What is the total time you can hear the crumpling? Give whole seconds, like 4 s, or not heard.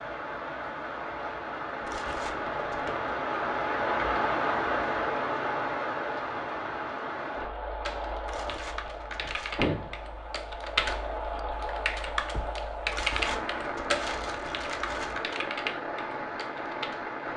5 s.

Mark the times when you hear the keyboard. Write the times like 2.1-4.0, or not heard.
7.8-17.0.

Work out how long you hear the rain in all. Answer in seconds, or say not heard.
17 s.